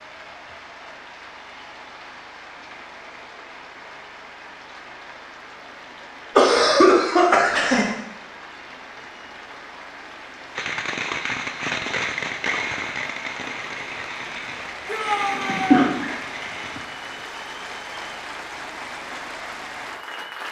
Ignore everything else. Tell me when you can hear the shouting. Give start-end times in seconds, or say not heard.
14.8-15.8.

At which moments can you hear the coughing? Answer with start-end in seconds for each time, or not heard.
6.3-7.9, 15.3-16.1.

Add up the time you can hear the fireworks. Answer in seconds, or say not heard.
6 s.